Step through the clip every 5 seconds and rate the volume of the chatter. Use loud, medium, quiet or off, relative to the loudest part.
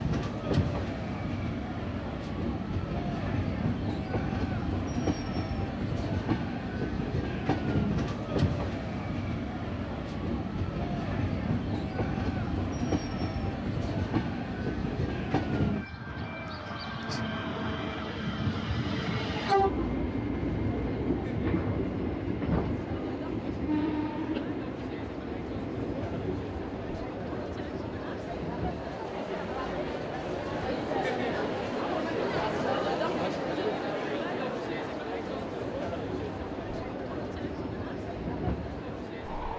quiet, quiet, quiet, quiet, quiet, medium, loud, medium.